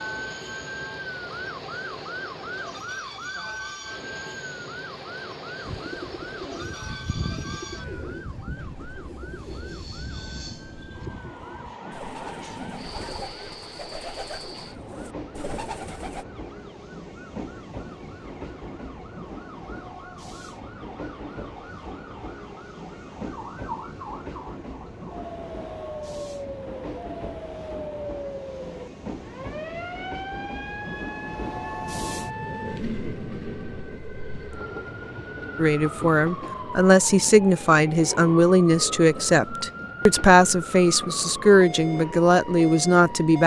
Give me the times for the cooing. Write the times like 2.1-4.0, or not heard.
5.6-16.2.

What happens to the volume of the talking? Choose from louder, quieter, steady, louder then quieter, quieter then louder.
steady.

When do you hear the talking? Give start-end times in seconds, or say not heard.
35.5-43.4.